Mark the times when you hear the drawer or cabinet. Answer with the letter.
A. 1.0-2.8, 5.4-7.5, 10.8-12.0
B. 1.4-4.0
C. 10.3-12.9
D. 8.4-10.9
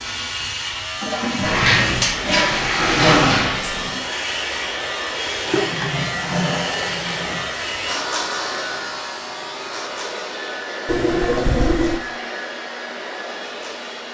B.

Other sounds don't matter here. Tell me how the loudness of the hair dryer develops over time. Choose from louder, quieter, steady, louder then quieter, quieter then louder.
steady.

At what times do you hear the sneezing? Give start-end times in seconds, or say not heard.
not heard.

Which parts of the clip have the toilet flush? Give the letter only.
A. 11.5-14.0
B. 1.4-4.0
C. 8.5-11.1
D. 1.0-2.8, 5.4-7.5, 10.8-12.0
D.